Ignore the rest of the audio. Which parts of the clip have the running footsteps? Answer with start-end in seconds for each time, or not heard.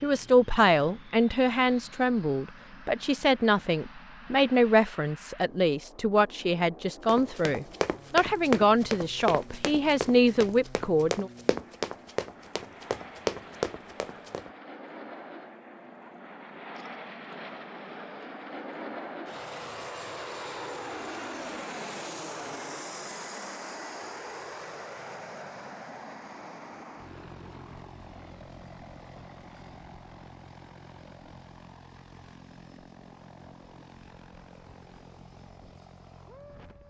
7.0-14.5.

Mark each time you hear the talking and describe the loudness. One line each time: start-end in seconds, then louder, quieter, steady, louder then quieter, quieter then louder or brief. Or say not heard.
0.0-11.3 steady.